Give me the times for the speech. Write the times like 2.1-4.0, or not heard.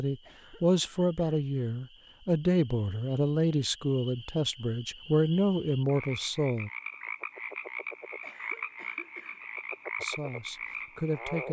0.0-6.7, 10.0-11.4.